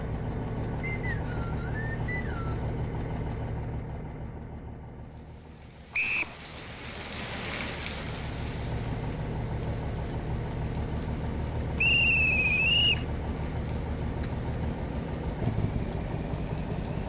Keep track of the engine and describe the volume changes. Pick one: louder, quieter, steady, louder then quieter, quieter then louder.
quieter then louder.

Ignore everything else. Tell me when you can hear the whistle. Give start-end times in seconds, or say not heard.
0.8-2.6, 5.9-6.3, 11.8-13.1.